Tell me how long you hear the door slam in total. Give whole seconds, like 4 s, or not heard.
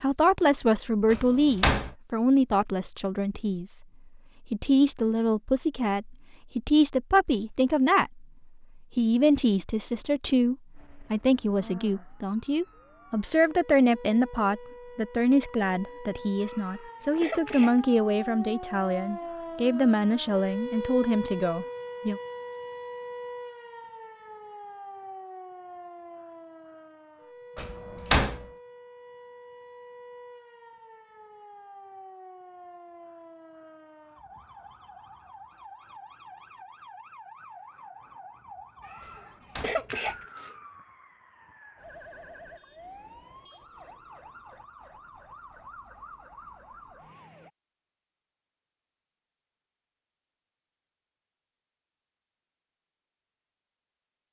3 s.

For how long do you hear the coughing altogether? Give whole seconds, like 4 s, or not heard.
3 s.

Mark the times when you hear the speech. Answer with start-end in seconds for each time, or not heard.
0.0-3.8, 4.5-8.2, 8.9-22.2.